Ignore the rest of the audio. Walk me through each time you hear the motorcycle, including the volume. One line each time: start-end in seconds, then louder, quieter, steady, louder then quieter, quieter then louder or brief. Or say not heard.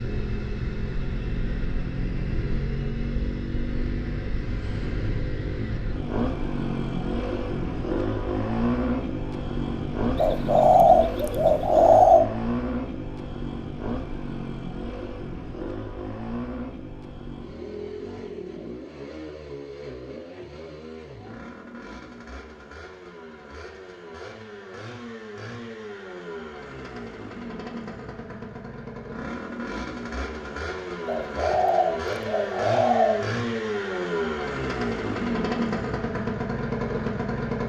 0.0-37.6 quieter then louder.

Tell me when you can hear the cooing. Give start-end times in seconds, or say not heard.
10.2-12.3, 31.1-33.2.